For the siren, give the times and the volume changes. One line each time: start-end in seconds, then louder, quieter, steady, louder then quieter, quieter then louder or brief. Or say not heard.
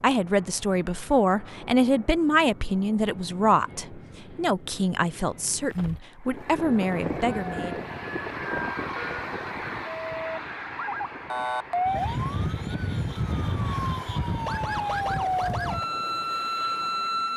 7.2-17.3 louder.